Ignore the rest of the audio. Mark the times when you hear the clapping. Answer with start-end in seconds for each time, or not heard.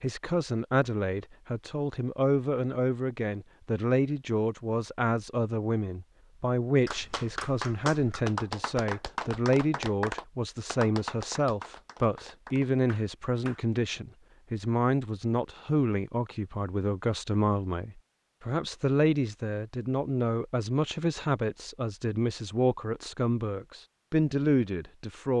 6.8-13.7.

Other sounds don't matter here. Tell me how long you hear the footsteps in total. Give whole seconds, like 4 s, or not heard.
not heard.